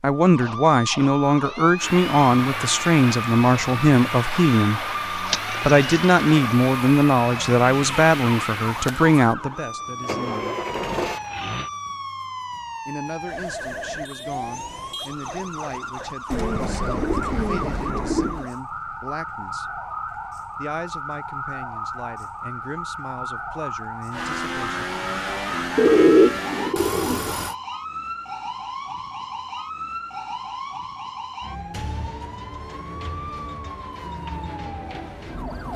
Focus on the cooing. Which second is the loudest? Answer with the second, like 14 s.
26 s.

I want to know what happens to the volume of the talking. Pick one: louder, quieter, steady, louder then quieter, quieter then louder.
quieter.